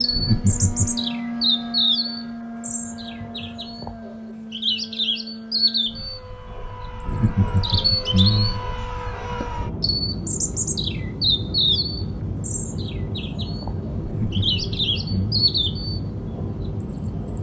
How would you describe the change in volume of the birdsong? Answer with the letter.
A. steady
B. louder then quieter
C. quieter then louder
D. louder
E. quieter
A.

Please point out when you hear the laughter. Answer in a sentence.
You can hear the laughter from 0.1 to 1.0 s, from 7.0 to 8.6 s and from 14.0 to 15.4 s.